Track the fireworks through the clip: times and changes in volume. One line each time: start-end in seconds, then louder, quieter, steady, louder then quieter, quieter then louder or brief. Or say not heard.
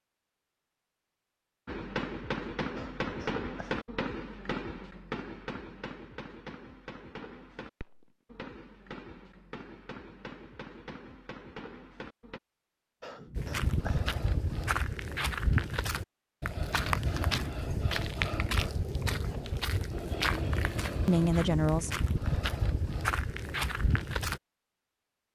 1.6-12.4 quieter.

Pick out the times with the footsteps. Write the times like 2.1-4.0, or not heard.
13.3-24.4.